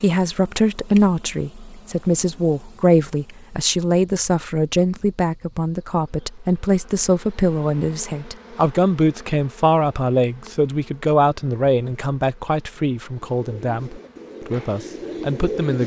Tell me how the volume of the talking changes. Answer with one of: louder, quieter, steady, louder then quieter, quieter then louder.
quieter.